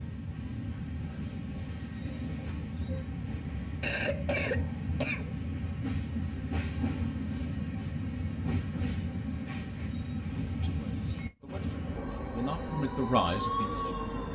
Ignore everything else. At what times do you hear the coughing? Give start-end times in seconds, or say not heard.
3.8-5.3.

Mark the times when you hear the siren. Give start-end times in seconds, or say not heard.
12.7-14.2.